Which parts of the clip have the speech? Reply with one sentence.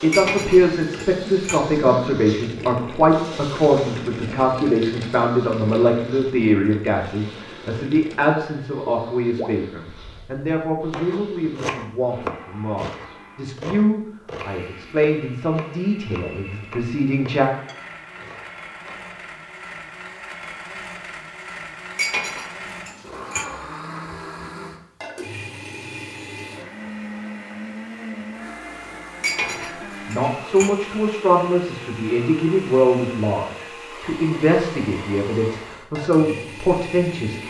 The speech can be heard from 0.0 to 17.5 s and from 29.6 to 37.4 s.